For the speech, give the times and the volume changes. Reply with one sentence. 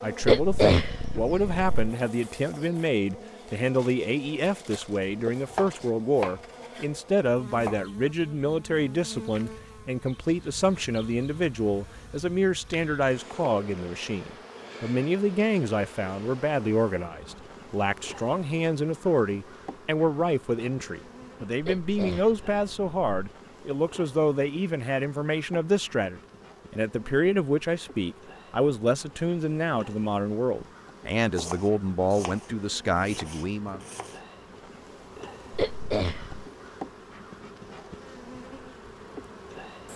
You can hear the speech from 0.0 to 33.8 s, at a steady volume.